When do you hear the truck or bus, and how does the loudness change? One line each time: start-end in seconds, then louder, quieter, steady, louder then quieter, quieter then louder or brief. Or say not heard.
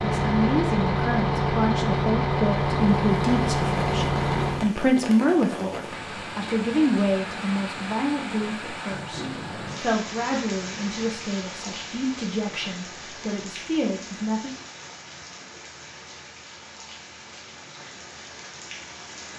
0.0-4.7 steady.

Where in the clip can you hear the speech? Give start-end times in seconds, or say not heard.
0.0-14.5.